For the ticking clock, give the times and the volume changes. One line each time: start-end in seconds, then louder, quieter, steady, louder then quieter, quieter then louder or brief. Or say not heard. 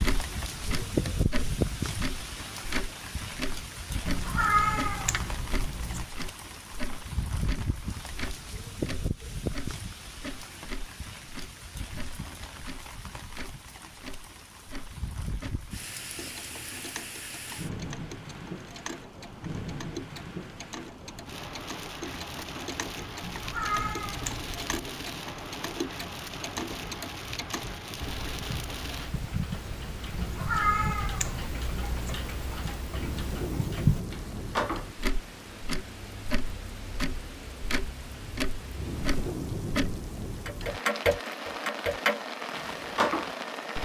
0.0-43.8 quieter then louder.